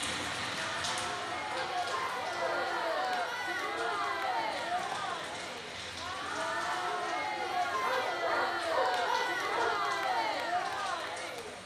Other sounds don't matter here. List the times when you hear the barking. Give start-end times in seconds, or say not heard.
1.4-3.0, 7.8-9.8.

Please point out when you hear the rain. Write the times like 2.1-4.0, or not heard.
0.0-11.6.